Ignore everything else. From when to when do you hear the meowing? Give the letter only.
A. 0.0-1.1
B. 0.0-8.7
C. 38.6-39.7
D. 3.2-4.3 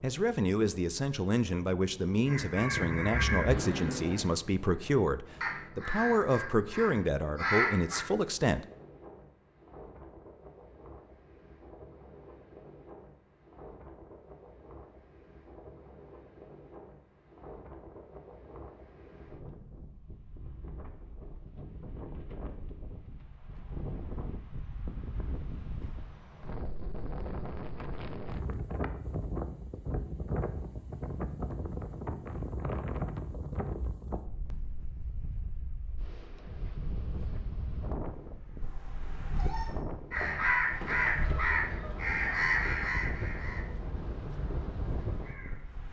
C.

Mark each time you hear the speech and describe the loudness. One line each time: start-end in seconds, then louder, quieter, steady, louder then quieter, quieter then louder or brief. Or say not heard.
0.0-8.7 steady.